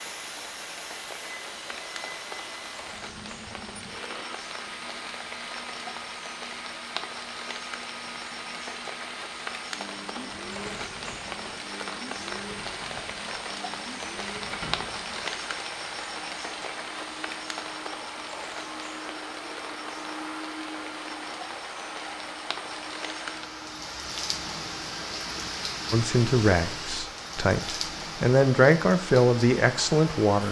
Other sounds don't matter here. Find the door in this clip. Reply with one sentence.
You can hear the door from 14.5 to 15.4 s.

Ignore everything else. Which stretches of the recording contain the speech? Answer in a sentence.
The speech can be heard from 25.9 to 30.4 s.